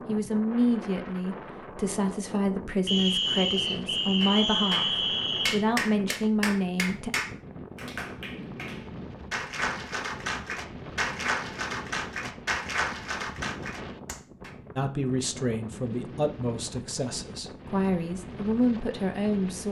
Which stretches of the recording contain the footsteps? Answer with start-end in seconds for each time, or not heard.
not heard.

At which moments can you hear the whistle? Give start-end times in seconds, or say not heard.
2.9-5.6.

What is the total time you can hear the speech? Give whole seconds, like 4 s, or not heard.
12 s.